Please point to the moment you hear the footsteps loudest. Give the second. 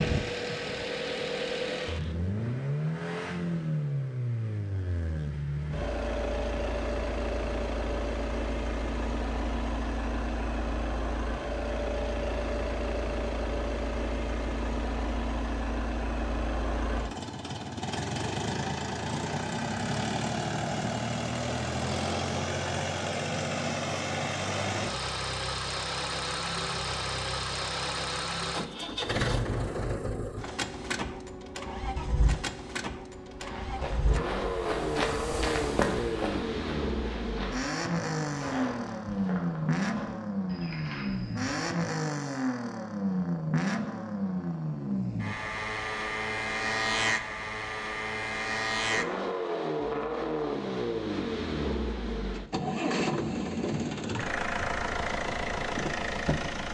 36 s.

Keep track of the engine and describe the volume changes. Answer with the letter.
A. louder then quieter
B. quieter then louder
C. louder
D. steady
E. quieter
D.